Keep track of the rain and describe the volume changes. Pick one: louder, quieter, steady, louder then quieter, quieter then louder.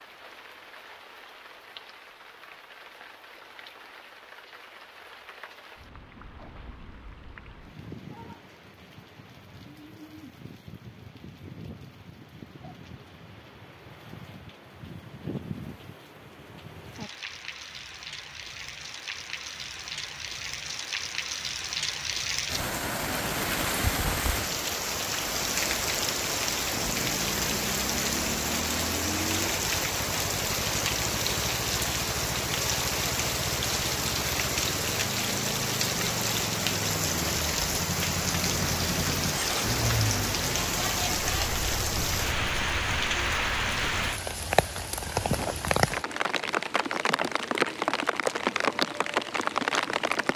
louder.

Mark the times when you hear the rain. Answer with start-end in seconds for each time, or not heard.
0.0-50.3.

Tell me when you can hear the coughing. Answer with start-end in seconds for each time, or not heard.
not heard.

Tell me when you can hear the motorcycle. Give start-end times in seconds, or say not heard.
26.6-44.1.